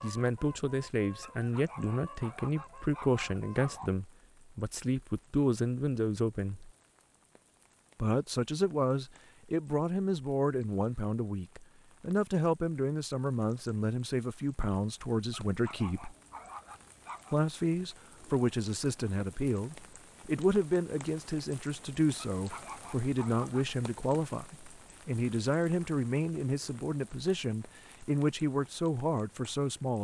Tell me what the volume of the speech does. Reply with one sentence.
The loudness of the speech stays about the same.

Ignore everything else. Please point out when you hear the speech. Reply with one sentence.
You can hear the speech from 0.0 to 6.7 s, from 8.0 to 16.1 s and from 17.3 to 29.9 s.